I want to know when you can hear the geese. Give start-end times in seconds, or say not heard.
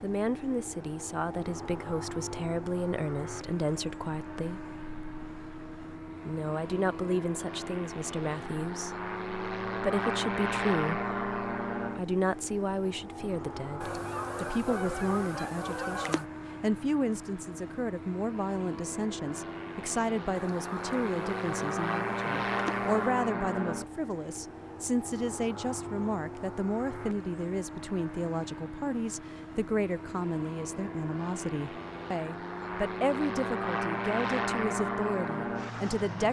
13.8-16.2, 20.3-23.1.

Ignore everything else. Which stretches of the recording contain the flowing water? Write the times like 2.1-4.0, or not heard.
not heard.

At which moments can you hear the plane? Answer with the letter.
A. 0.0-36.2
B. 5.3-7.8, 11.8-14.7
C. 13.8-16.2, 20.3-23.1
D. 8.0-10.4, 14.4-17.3
A.